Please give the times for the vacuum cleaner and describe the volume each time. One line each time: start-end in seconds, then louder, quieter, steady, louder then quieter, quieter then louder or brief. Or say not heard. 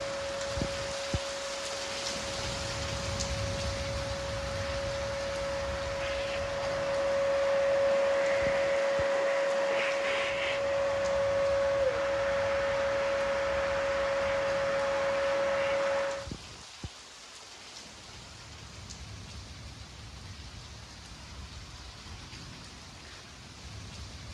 0.0-16.3 louder.